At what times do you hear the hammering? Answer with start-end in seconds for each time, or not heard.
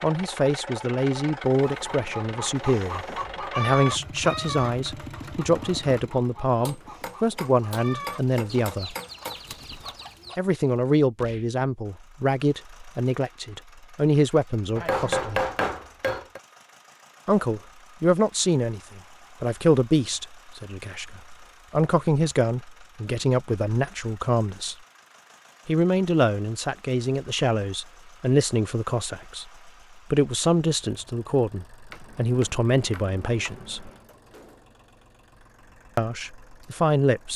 6.7-9.4, 14.8-16.4, 31.9-34.1.